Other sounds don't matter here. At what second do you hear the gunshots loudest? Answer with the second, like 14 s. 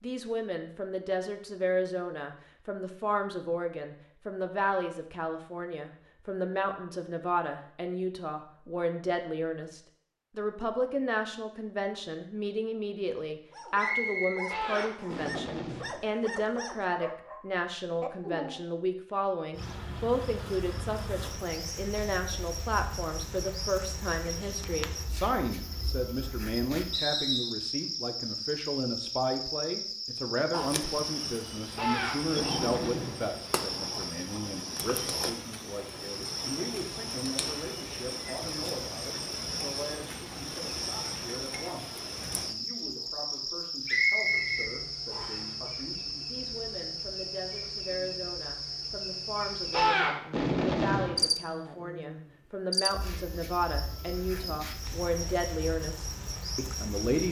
50 s.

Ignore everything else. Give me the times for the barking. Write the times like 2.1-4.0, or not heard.
13.5-18.6.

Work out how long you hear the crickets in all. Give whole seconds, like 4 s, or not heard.
38 s.